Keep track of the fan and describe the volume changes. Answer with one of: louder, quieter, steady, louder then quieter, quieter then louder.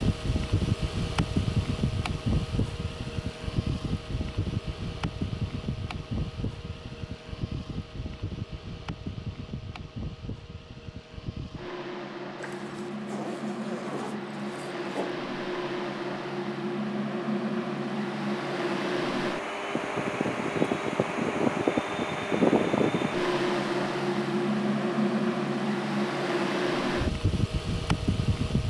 quieter then louder.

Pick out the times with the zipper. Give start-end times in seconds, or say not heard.
12.3-15.2.